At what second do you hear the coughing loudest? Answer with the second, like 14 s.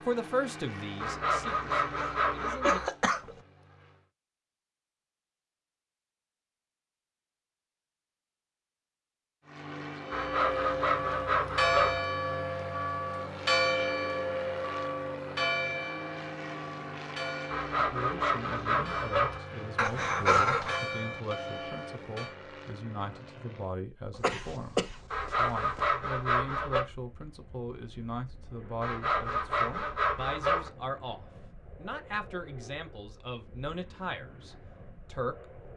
20 s.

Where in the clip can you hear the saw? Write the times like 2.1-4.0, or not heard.
1.0-2.9, 10.1-12.0, 17.5-19.4, 25.1-26.9, 28.8-30.7.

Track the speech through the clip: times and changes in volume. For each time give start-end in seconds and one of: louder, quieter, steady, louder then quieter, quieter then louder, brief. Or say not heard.
0.0-2.8 brief
17.8-35.5 steady.